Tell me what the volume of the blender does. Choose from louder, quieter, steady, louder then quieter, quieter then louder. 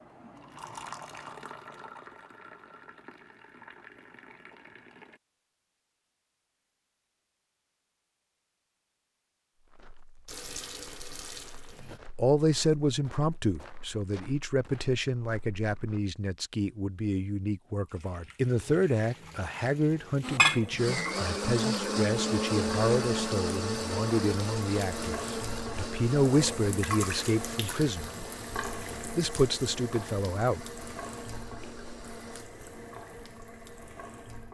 quieter.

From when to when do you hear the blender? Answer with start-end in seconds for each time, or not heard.
20.2-32.5.